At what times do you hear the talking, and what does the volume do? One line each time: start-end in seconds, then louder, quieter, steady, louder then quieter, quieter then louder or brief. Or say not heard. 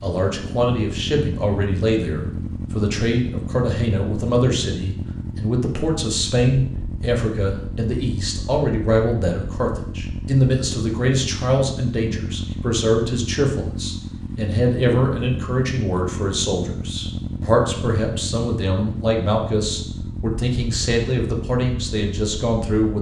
0.0-22.9 steady.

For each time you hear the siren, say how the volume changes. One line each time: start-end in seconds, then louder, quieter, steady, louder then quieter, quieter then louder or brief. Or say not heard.
not heard.